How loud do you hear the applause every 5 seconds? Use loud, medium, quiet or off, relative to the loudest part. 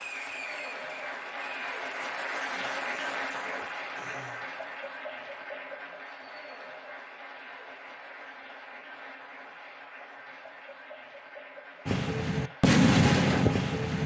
loud, medium, medium.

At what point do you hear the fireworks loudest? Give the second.
13 s.